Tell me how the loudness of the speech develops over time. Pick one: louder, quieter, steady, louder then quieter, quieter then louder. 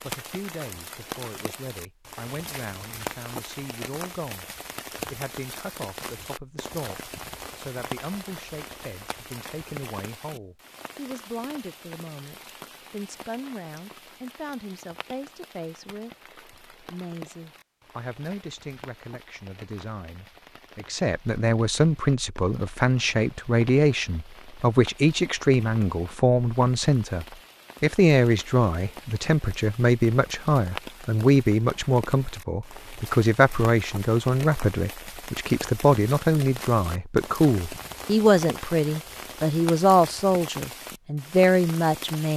louder.